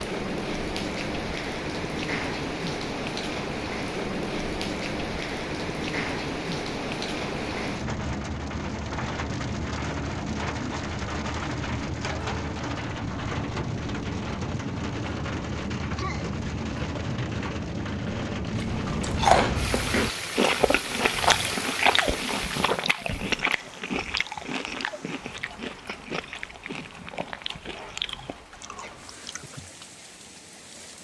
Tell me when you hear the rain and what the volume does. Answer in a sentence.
The rain can be heard from 0.0 to 30.9 s, getting quieter.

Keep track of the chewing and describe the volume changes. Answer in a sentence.
The volume of the chewing goes down.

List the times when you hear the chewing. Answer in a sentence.
You can hear the chewing from 18.4 to 29.7 s.